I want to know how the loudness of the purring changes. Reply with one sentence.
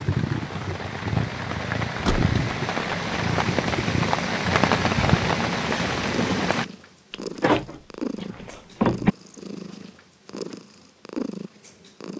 The loudness of the purring goes down.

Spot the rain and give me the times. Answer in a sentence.
You can hear the rain from 0.0 to 6.7 s.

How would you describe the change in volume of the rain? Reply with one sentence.
The loudness of the rain goes up.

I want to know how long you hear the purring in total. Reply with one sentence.
You can hear the purring for 12 seconds altogether.